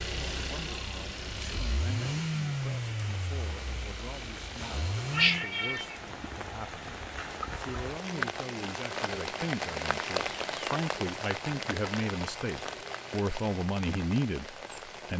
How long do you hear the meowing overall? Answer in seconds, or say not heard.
2 s.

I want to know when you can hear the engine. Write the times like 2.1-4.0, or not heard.
0.0-5.5.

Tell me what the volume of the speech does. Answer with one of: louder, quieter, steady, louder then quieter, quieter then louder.
louder.